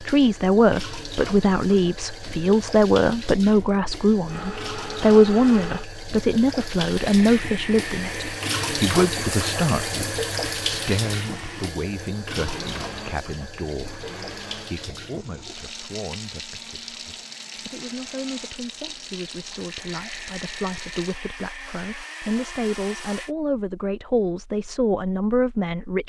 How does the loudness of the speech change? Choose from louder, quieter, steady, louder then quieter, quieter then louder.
quieter then louder.